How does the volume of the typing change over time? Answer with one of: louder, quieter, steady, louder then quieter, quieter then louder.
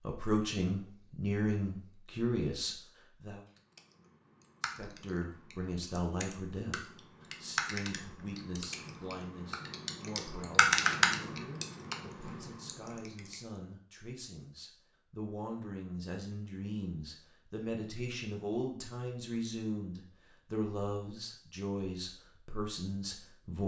louder then quieter.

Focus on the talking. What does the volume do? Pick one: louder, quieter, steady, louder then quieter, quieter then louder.
quieter then louder.